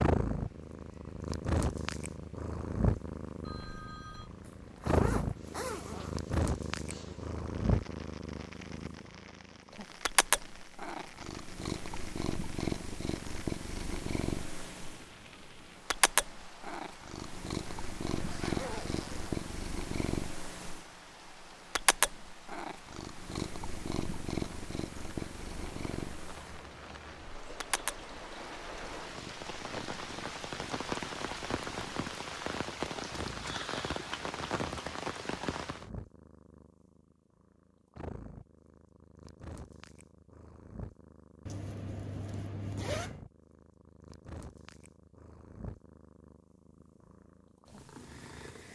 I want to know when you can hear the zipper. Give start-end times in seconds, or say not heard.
4.4-6.3, 17.6-19.4, 41.5-43.2.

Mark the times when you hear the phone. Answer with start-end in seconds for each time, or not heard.
3.4-4.3.